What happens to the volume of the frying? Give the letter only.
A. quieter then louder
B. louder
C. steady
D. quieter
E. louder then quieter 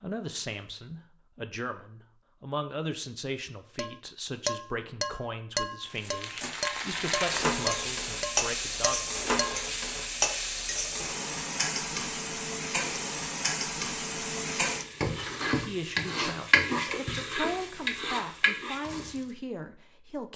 C.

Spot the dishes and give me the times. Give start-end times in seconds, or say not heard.
3.8-9.7.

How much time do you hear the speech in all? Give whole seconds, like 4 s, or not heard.
14 s.